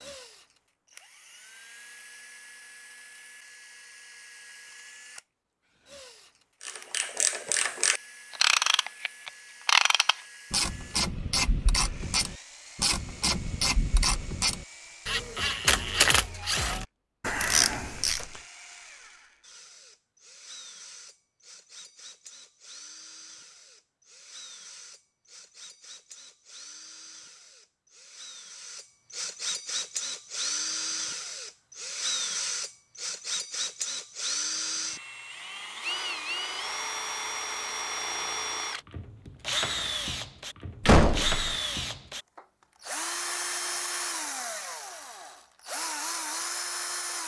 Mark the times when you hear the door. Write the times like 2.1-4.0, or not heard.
40.9-41.5.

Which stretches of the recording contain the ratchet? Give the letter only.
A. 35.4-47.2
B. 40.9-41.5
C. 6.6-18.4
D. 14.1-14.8
C.